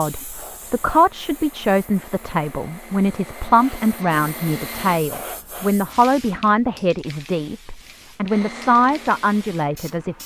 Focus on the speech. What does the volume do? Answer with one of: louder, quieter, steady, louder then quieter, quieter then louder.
steady.